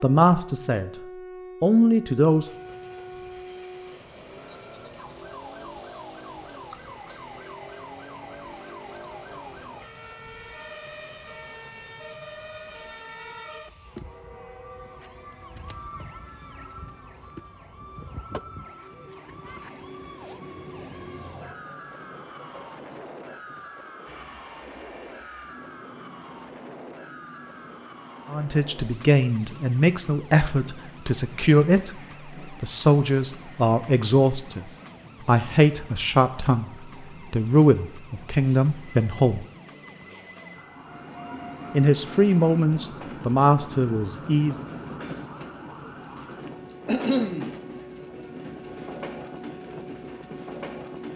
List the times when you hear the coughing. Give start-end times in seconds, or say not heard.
46.5-47.5.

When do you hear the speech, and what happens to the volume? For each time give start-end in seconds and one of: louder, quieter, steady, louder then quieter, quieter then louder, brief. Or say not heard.
0.0-0.9 brief
1.6-2.5 brief
28.3-39.5 steady
41.7-44.6 brief.